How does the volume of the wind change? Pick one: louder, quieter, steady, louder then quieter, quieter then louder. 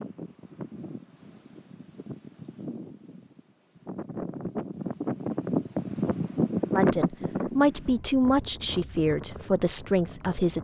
louder then quieter.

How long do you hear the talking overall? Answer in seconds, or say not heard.
4 s.